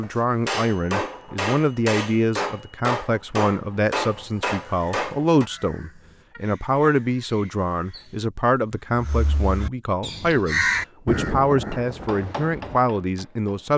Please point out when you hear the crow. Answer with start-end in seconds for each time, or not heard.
4.1-12.8.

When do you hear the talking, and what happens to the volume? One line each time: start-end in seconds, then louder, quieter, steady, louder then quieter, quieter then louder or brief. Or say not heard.
0.0-13.7 steady.